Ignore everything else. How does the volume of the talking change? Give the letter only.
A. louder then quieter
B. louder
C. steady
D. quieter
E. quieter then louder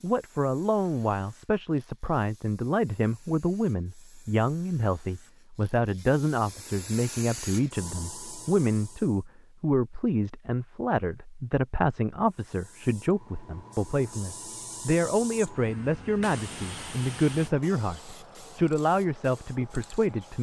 C.